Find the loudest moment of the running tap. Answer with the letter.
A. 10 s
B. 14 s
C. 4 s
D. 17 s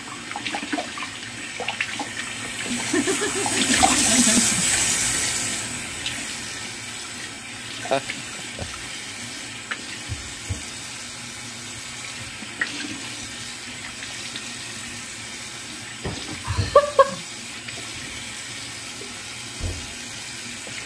C.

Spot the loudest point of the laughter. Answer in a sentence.
The loudest moment of the laughter is at 17 seconds.